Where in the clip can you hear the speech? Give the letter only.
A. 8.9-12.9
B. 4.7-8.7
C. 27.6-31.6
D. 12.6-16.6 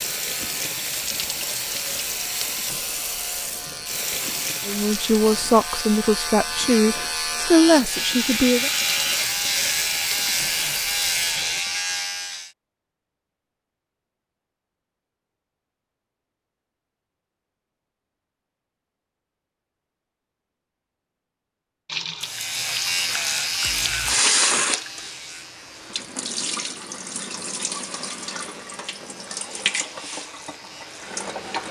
B.